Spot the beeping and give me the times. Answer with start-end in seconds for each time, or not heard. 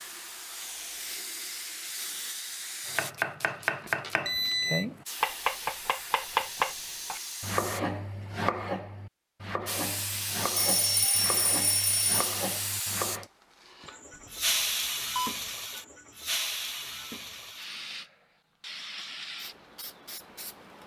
4.2-4.8, 10.6-12.2, 14.2-15.4.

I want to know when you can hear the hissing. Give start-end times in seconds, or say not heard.
0.0-7.8, 9.7-20.8.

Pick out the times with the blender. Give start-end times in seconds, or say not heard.
not heard.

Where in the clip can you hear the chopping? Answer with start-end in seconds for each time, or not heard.
2.9-13.3.